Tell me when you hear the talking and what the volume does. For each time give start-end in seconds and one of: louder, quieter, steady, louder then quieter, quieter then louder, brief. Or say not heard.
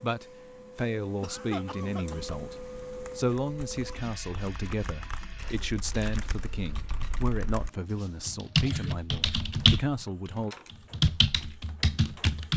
0.0-2.5 brief
3.1-10.6 steady.